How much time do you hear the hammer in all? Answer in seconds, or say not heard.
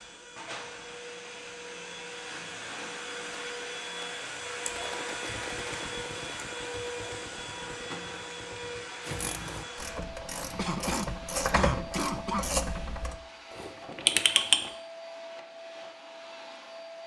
not heard.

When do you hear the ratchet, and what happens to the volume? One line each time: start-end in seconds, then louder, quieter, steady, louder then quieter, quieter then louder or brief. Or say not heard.
9.0-14.7 louder.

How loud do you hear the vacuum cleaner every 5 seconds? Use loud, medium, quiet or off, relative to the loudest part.
loud, loud, medium, medium.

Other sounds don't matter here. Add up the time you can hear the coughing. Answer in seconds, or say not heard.
2 s.